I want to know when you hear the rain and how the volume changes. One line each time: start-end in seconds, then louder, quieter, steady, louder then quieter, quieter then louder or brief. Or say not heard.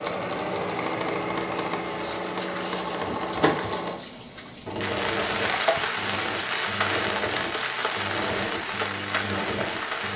0.0-10.1 louder.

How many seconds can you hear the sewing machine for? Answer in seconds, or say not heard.
10 s.